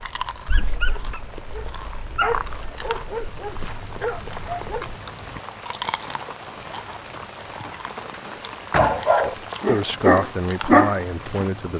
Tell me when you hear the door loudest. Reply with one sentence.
The loudest moment of the door is at 9 seconds.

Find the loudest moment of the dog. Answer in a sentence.
The loudest moment of the dog is at 11 seconds.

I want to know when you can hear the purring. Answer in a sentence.
The purring can't be heard in this clip.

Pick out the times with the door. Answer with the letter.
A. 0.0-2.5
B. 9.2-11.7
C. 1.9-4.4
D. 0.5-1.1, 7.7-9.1
D.